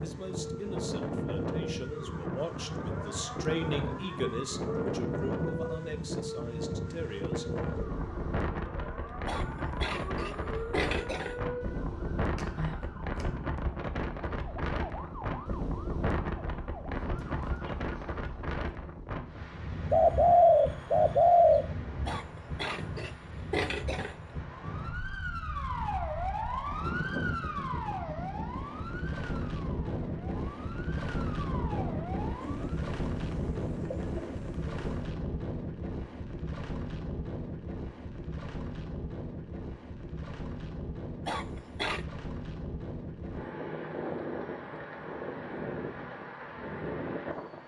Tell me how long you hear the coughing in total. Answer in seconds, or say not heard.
5 s.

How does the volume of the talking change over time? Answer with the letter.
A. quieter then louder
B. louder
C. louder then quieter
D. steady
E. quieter
C.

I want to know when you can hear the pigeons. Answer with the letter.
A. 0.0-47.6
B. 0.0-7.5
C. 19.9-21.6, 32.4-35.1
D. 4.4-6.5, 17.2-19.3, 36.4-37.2
C.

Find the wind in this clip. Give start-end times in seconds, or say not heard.
0.0-47.6.